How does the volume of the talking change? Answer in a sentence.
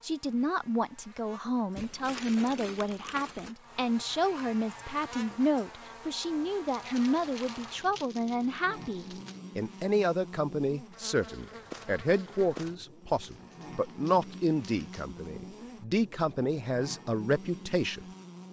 The volume of the talking stays about the same.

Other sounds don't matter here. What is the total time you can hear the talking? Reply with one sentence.
The talking can be heard for 18 seconds in total.